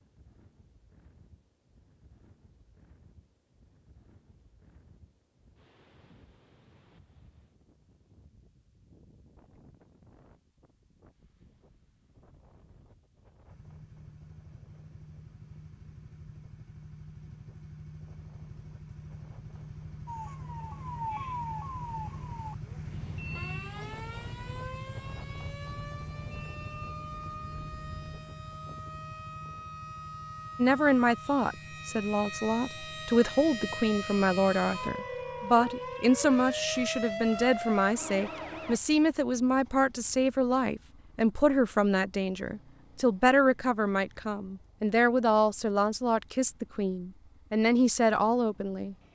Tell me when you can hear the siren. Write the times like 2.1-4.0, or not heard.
20.1-38.8.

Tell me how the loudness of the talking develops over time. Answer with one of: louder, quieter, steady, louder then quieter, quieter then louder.
steady.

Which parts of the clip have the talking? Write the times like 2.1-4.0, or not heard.
30.6-49.0.